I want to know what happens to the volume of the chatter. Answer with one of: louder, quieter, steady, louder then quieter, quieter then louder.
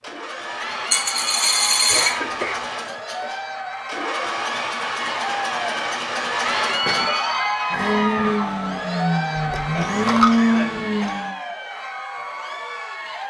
louder then quieter.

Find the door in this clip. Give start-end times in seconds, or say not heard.
not heard.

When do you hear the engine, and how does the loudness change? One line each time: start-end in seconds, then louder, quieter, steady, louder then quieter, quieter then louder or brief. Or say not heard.
0.0-11.3 louder.